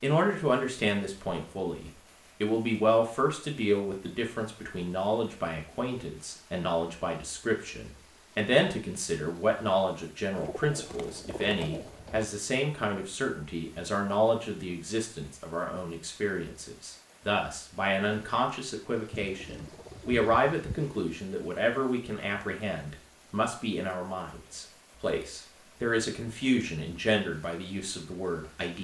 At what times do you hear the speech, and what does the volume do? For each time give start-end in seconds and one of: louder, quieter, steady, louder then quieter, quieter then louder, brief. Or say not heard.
0.0-28.7 steady.